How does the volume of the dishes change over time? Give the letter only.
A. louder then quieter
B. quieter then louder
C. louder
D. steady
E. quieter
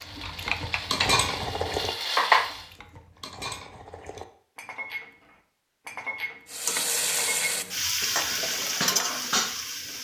B.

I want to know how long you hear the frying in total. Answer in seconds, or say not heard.
6 s.